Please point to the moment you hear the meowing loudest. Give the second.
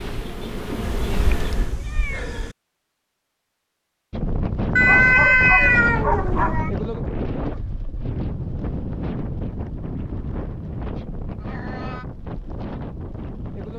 5 s.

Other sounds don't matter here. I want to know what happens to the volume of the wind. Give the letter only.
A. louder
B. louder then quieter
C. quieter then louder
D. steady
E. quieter
E.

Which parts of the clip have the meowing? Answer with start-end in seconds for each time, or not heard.
0.8-2.5, 4.8-6.7, 11.4-12.1.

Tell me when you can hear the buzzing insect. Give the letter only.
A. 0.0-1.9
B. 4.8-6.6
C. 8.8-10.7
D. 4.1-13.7
A.